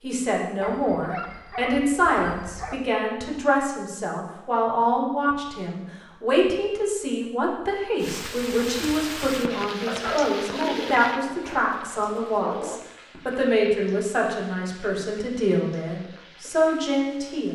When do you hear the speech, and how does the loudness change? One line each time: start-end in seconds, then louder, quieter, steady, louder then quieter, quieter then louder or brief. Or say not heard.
0.0-17.5 steady.